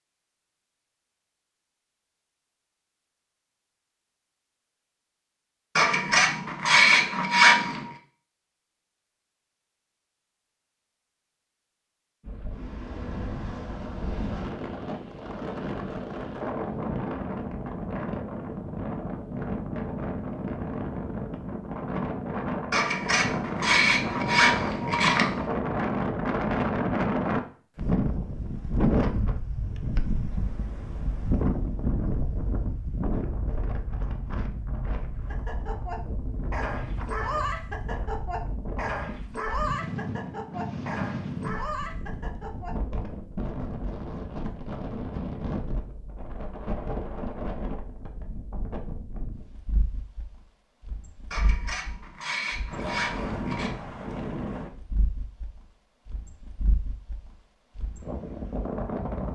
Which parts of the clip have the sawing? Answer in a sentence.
You can hear the sawing from 5.8 to 7.9 s, from 22.7 to 25.4 s and from 51.3 to 53.8 s.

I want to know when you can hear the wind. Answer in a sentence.
You can hear the wind from 12.2 to 59.3 s.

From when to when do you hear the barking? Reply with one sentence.
You can hear the barking from 35.2 to 42.8 s.